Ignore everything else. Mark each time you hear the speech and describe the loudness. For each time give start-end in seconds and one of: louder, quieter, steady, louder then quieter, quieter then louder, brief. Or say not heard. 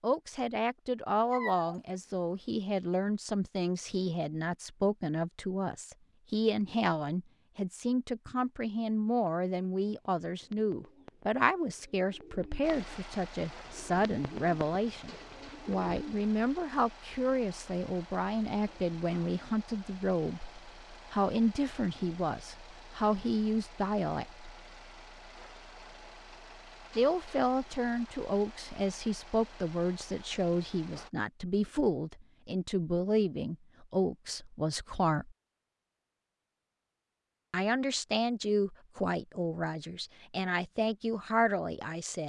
0.0-24.4 steady
26.9-35.4 steady
37.5-42.2 quieter then louder.